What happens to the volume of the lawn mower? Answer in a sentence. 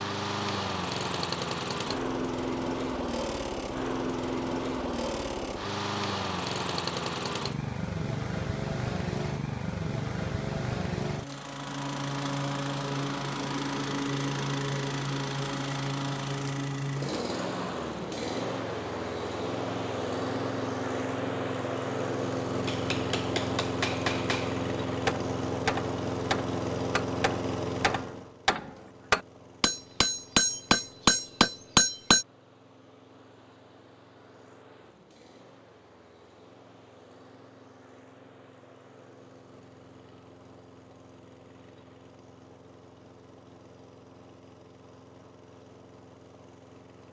The loudness of the lawn mower goes down.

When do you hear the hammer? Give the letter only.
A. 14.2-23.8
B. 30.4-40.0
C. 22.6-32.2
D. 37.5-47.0
C.